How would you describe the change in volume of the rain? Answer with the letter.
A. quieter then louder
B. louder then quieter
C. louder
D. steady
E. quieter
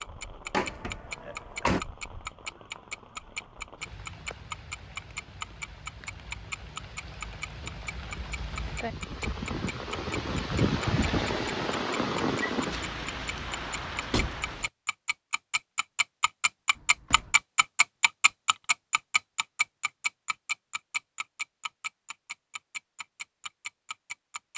C.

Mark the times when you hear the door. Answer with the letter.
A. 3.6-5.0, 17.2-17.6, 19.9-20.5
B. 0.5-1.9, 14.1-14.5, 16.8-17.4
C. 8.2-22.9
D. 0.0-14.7
B.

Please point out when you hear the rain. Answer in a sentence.
You can hear the rain from 0.0 to 14.7 s.